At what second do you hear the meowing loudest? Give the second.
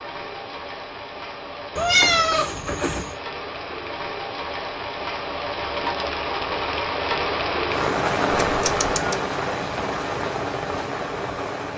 2 s.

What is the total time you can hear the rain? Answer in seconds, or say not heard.
12 s.